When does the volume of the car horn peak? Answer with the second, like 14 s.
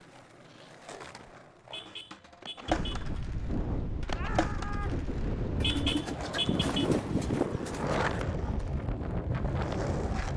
6 s.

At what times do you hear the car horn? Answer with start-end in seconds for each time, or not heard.
1.7-3.1, 5.6-6.8.